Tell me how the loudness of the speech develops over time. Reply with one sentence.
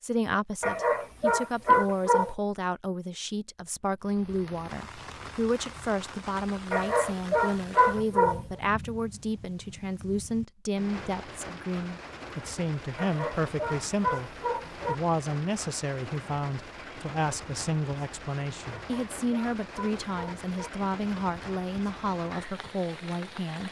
The loudness of the speech stays about the same.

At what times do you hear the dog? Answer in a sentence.
The dog can be heard from 0.6 to 2.4 s, from 6.7 to 8.4 s, from 12.9 to 14.9 s and from 18.7 to 20.7 s.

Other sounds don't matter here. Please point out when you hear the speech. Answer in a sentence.
You can hear the speech from 0.0 to 23.6 s.